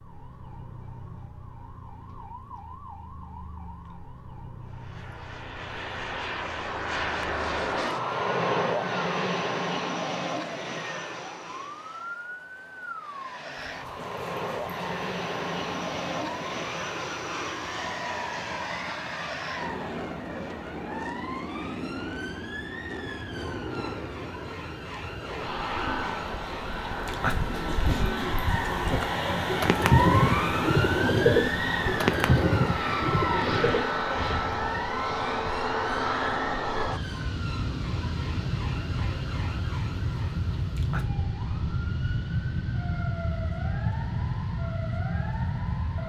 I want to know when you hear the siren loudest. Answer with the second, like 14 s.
30 s.